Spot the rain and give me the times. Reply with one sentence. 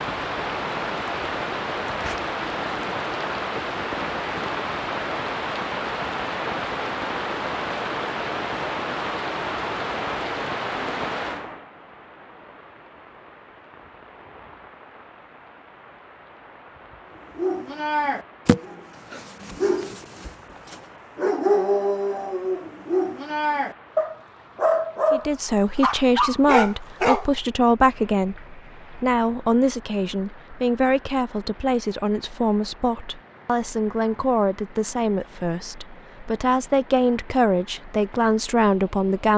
You can hear the rain from 0.0 to 39.3 s.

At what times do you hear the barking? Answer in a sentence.
The barking can be heard from 17.4 to 27.3 s.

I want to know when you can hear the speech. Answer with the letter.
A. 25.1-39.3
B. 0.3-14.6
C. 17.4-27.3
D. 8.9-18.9
A.